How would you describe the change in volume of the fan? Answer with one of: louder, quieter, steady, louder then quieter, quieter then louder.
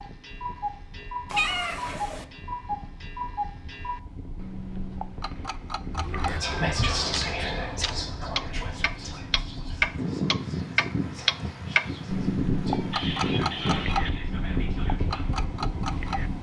louder.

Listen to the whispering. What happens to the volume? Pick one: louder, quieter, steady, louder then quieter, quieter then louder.
quieter then louder.